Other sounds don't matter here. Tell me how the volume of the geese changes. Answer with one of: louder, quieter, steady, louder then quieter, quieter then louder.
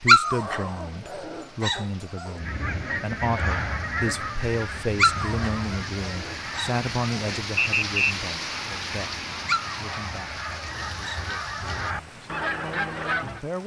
quieter then louder.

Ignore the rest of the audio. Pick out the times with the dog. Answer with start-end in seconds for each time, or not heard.
0.1-2.3, 5.0-7.3, 9.4-11.9.